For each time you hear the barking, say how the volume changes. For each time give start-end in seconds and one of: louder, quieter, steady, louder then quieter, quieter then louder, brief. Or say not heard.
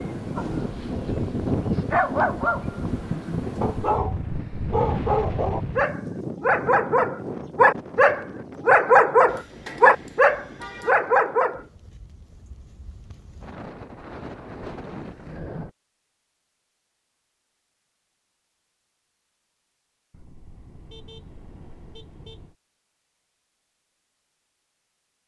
0.3-11.6 louder.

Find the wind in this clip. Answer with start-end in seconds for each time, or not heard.
0.0-15.7.